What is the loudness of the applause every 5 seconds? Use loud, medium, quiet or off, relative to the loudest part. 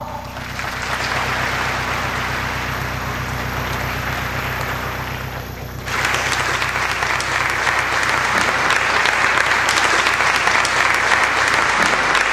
medium, loud, loud.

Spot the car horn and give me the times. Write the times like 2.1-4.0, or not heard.
not heard.